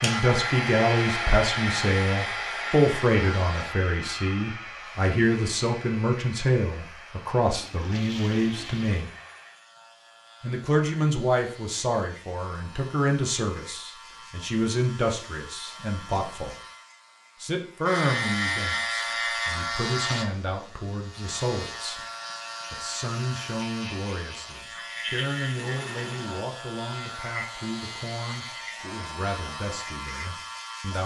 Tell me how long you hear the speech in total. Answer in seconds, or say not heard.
28 s.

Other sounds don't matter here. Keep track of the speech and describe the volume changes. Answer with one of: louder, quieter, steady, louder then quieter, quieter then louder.
quieter.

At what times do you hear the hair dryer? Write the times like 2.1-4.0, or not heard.
0.0-9.6.